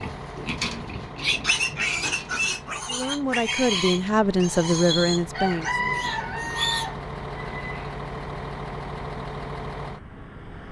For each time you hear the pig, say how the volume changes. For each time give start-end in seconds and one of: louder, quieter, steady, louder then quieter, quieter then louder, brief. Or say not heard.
0.0-7.0 quieter.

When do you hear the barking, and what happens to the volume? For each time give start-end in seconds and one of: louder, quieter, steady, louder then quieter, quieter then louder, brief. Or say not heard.
not heard.